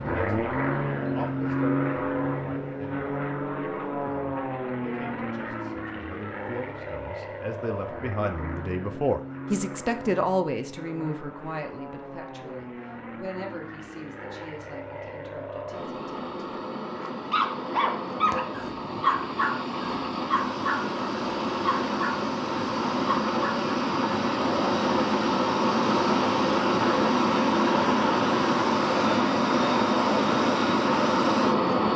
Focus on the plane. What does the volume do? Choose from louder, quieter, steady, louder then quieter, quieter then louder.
quieter then louder.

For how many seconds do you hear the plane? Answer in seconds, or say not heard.
32 s.